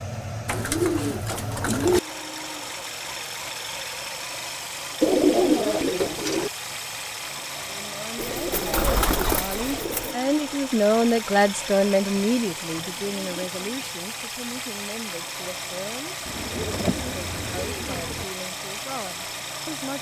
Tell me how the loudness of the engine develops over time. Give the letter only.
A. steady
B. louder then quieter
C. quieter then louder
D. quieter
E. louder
A.